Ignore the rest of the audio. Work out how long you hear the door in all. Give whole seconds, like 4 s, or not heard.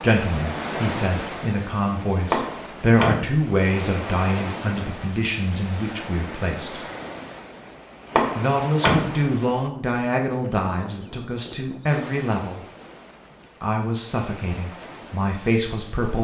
2 s.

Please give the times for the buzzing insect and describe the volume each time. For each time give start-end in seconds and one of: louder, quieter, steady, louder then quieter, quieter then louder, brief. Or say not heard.
not heard.